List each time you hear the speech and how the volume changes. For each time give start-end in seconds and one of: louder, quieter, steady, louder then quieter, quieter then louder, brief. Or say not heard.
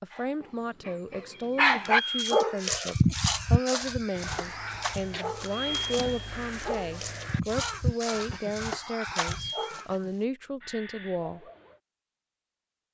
0.0-11.4 steady.